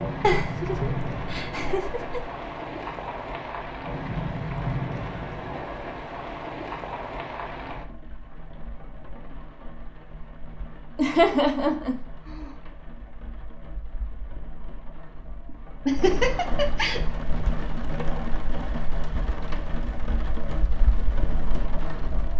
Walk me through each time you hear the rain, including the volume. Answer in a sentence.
The rain can be heard from 0.0 to 22.3 s, getting quieter then louder.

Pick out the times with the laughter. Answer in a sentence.
You can hear the laughter from 0.2 to 2.2 s, from 10.9 to 12.5 s and from 15.8 to 17.0 s.